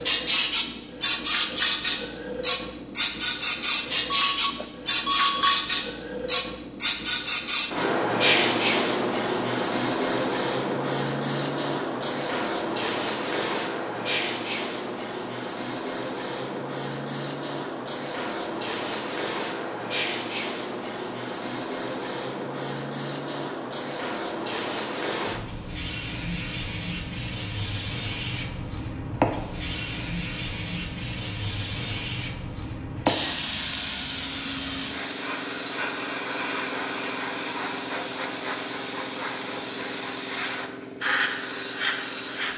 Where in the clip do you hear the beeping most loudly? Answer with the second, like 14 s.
5 s.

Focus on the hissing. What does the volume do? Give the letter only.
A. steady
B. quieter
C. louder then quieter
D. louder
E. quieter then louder
B.